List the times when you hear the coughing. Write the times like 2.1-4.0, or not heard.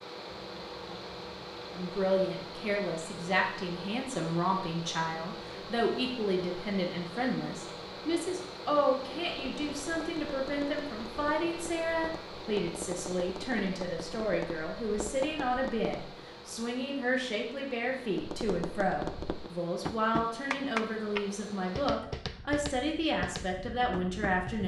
not heard.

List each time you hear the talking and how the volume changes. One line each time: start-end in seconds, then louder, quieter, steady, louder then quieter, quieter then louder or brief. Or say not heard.
1.7-24.6 steady.